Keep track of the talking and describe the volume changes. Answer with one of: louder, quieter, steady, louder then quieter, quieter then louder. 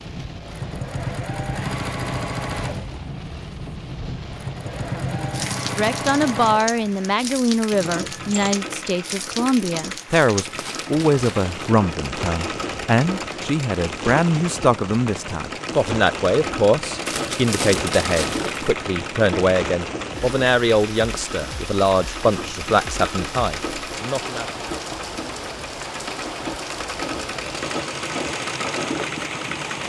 steady.